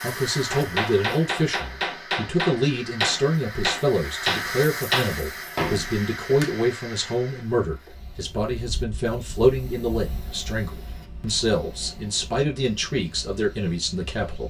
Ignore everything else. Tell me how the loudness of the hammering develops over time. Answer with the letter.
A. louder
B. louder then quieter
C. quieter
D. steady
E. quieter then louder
B.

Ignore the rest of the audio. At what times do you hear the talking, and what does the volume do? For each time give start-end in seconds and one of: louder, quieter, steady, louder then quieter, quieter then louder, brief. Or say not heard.
0.0-14.4 steady.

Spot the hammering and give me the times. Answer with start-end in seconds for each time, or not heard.
0.5-6.5.